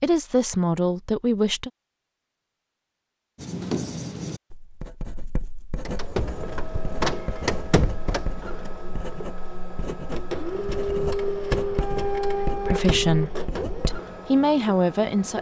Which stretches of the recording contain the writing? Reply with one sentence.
You can hear the writing from 3.4 to 13.9 s.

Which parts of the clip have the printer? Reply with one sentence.
The printer can be heard from 5.8 to 15.3 s.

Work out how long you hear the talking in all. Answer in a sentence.
You can hear the talking for 4 seconds altogether.